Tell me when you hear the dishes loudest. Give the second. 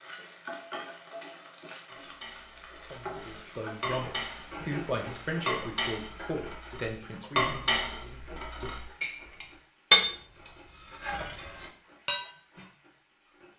10 s.